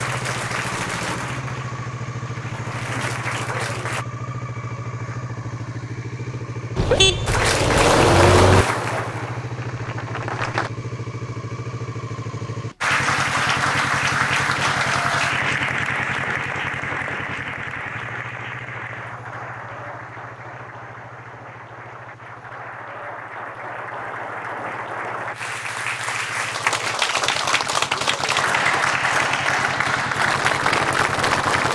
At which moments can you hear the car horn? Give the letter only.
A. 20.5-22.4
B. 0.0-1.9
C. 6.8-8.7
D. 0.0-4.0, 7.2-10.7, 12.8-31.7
C.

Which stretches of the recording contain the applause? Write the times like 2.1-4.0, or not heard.
0.0-4.0, 7.2-10.7, 12.8-31.7.